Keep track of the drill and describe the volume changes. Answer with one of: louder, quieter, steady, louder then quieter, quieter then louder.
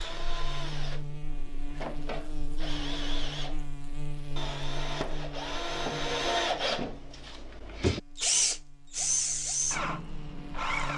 louder.